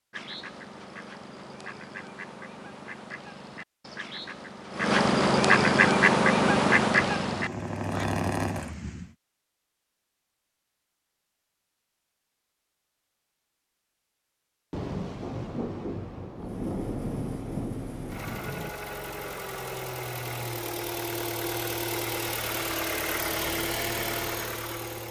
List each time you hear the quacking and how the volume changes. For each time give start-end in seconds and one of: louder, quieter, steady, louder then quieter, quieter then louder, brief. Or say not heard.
0.1-8.1 louder.